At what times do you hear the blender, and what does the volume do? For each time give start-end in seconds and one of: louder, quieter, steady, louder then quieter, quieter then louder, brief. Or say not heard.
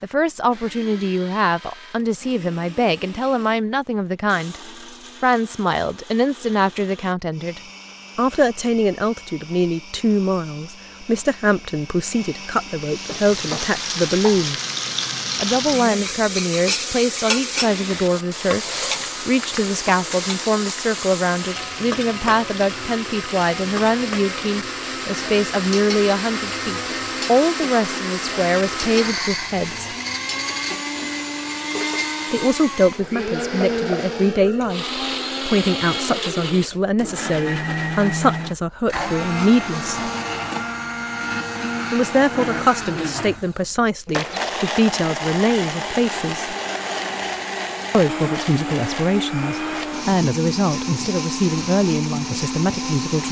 0.1-53.2 louder.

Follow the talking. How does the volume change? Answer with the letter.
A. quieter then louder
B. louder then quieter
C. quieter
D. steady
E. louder
D.